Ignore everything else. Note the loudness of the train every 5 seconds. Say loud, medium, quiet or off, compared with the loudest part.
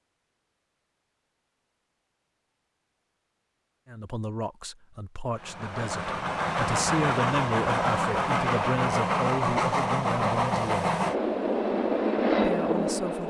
off, loud, loud.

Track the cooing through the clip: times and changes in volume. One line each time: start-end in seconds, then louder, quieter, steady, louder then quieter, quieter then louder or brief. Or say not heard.
not heard.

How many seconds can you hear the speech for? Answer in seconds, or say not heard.
8 s.